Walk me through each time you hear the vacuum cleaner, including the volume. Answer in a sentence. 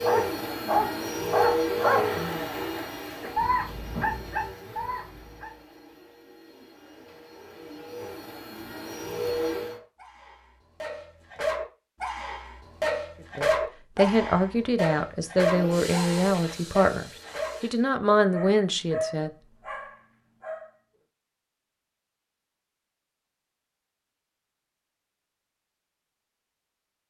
The vacuum cleaner can be heard from 0.0 to 9.8 s, getting quieter then louder; and briefly from 15.4 to 17.9 s.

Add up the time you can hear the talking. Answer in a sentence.
You can hear the talking for 6 seconds altogether.